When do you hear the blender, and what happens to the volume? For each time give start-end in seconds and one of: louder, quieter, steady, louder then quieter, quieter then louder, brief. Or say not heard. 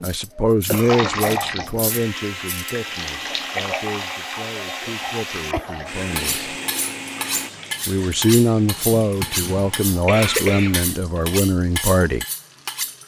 1.9-7.5 steady.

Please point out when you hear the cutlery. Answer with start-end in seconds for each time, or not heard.
0.0-2.8, 6.2-13.0.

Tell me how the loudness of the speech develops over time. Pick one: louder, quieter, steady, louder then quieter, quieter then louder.
quieter then louder.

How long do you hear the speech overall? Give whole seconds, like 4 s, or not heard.
11 s.